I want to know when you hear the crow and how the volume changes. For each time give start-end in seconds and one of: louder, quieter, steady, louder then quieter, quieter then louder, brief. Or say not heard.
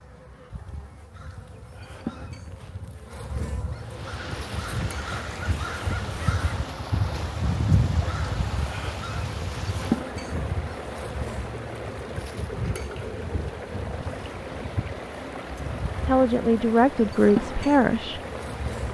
1.1-10.8 louder then quieter.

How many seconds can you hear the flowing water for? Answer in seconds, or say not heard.
15 s.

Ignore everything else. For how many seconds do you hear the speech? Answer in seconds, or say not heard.
2 s.